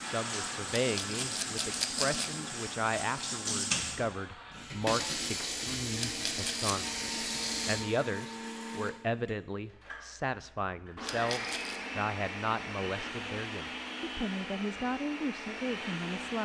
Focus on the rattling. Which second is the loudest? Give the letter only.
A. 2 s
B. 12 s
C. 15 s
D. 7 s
A.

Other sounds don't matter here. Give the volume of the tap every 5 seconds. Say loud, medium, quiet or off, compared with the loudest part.
loud, loud, off, off.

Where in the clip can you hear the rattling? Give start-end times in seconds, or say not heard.
0.8-2.4, 6.0-6.9, 11.0-11.8.